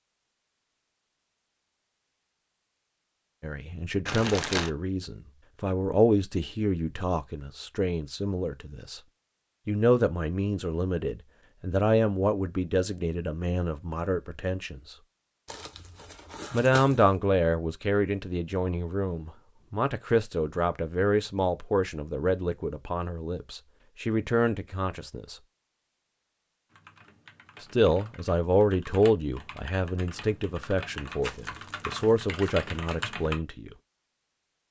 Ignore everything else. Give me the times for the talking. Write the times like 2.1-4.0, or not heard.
3.4-9.0, 9.7-14.9, 16.5-25.4, 27.6-33.7.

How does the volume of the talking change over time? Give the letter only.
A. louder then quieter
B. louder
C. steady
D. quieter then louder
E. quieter
C.